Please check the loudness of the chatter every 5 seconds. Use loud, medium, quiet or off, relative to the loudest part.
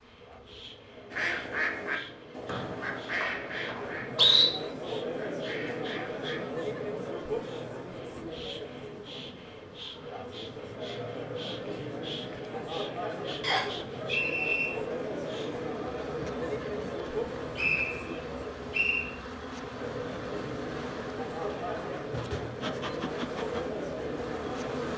medium, loud, loud, loud, loud.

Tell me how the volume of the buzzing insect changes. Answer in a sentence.
The volume of the buzzing insect goes up.